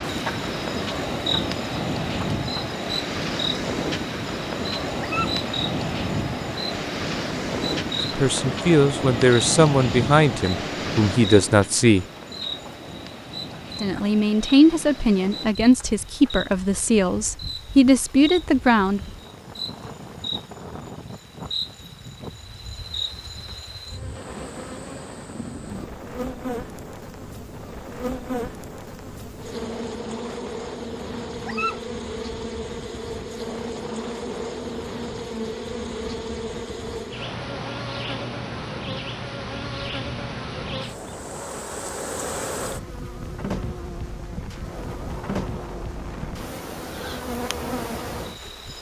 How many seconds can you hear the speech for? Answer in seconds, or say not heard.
9 s.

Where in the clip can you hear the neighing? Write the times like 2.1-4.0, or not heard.
not heard.